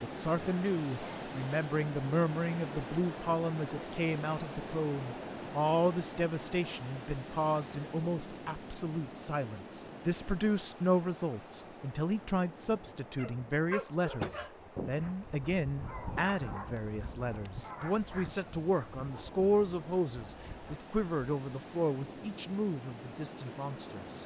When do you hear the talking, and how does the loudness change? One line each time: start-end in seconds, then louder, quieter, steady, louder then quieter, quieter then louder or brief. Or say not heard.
0.0-24.2 steady.